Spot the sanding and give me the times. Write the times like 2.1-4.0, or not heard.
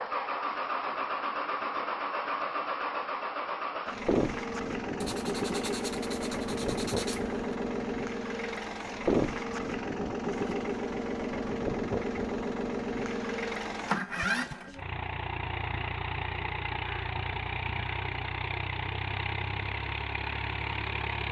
5.0-7.4.